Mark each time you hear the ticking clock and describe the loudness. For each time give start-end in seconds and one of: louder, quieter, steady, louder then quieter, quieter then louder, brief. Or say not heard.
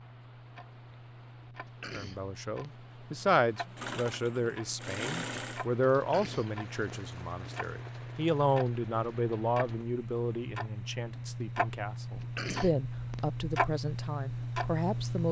0.0-15.2 louder.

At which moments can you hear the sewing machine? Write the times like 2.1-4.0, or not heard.
3.8-5.7.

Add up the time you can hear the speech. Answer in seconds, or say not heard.
13 s.